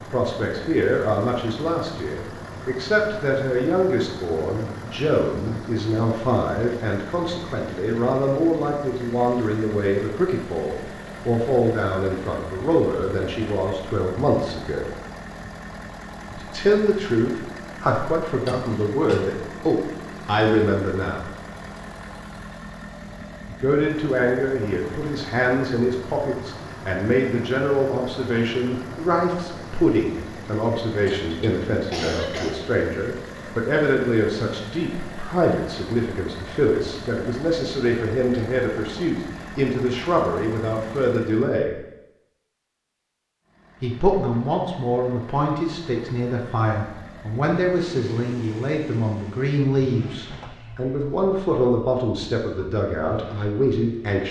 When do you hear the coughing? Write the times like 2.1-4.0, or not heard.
18.4-19.2, 31.1-32.5.